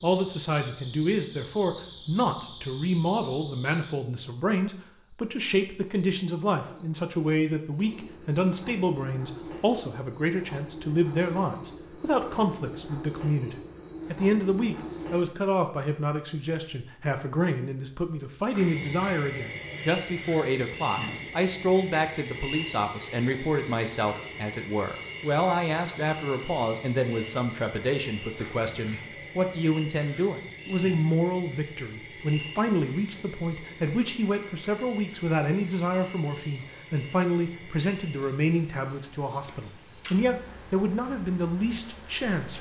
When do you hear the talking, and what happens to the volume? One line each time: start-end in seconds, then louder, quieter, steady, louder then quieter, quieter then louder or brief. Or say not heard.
0.0-42.5 steady.